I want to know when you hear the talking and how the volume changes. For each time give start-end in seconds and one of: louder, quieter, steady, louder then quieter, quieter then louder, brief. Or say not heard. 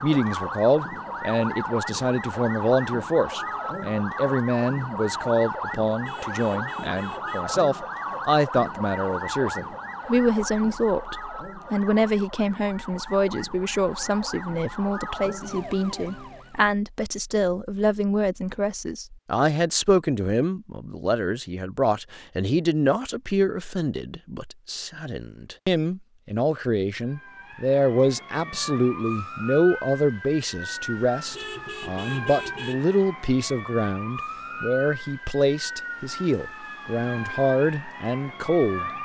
0.0-38.9 steady.